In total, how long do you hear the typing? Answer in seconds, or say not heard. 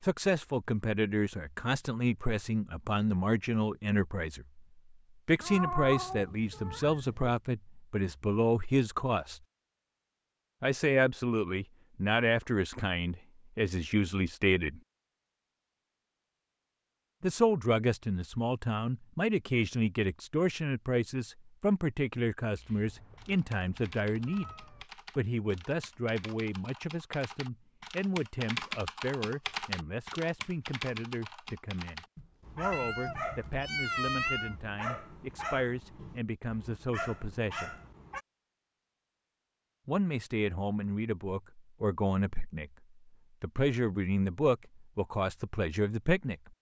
11 s.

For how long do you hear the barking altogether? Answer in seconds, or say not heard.
6 s.